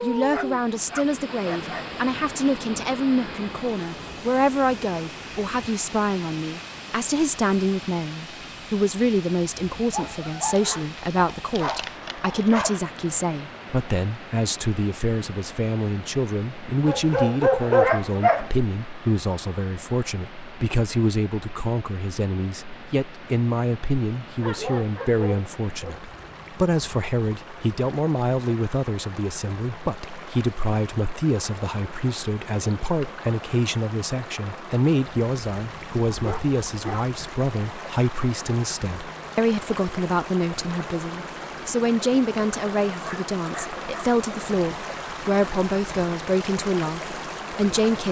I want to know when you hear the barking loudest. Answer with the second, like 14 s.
18 s.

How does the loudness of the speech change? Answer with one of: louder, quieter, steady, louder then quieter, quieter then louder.
steady.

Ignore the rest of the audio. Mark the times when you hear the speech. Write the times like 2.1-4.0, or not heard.
0.0-48.0.